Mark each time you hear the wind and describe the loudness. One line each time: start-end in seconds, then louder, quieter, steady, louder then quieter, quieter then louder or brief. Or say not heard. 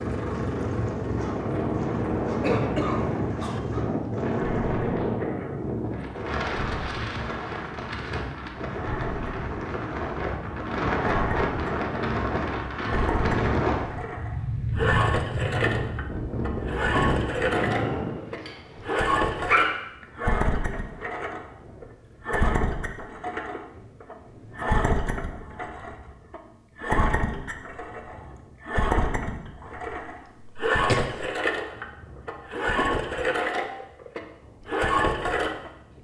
0.0-35.9 quieter.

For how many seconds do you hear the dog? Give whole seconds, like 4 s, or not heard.
7 s.